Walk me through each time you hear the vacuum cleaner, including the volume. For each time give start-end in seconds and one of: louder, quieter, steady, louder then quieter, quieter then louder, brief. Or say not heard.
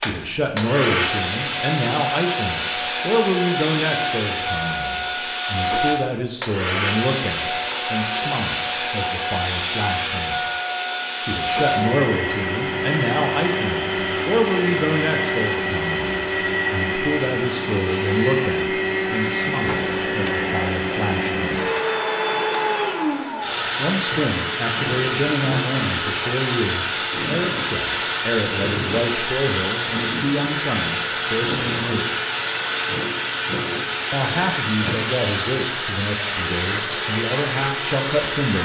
0.0-38.5 steady.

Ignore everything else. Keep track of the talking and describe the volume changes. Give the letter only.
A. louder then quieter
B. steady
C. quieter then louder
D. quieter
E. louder
B.